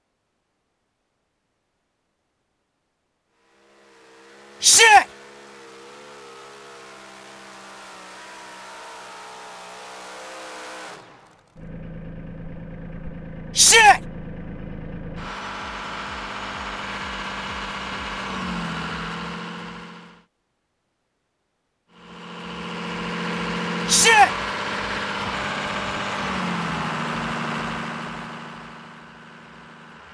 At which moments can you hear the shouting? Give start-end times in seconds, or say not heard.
4.6-5.0, 13.6-14.0, 23.9-24.3.